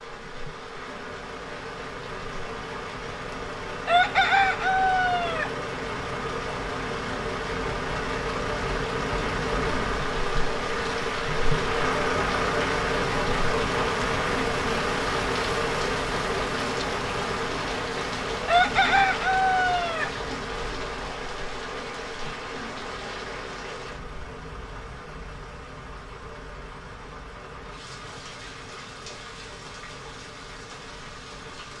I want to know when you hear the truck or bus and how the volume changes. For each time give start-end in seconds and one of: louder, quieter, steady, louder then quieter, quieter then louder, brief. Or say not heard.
0.0-31.7 louder then quieter.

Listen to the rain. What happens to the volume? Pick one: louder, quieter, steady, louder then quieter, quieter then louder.
louder then quieter.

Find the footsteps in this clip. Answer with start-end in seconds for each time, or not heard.
not heard.